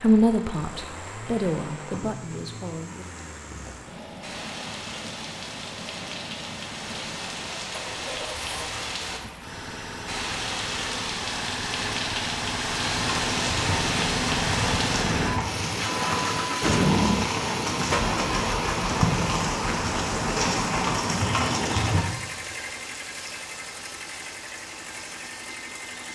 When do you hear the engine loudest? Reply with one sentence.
The loudest moment of the engine is at 17 seconds.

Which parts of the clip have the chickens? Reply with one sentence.
The chickens can't be heard in this clip.